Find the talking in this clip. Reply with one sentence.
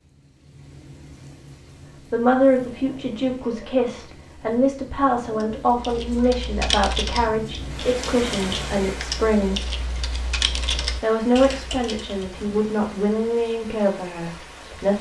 The talking can be heard from 2.1 to 9.8 s and from 10.9 to 14.9 s.